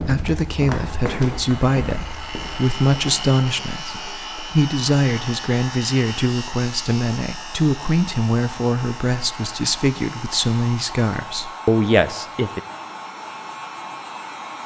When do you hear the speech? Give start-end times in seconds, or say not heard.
0.0-12.6.